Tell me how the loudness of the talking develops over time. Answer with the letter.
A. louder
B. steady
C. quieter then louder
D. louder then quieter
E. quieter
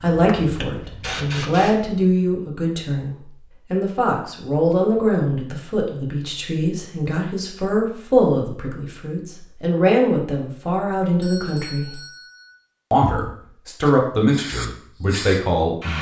B.